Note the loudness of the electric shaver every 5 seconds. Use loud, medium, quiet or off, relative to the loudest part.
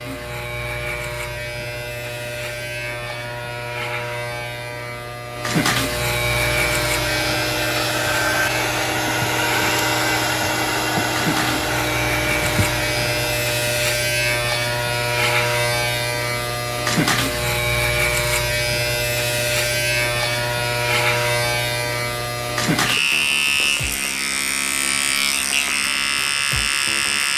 medium, loud, loud, loud, loud, loud.